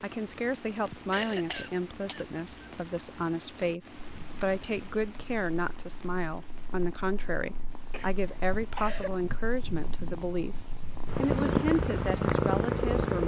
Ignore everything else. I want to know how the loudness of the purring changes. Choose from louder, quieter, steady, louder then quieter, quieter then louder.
louder.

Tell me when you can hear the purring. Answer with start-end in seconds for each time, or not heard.
4.0-13.2.